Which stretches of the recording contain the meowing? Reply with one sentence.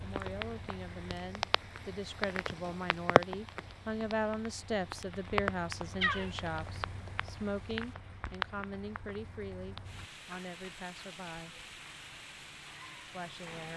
The meowing can be heard from 6.0 to 7.8 s.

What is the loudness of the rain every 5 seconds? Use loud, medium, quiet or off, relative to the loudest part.
loud, loud, medium.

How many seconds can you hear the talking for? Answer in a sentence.
The talking can be heard for 12 seconds in total.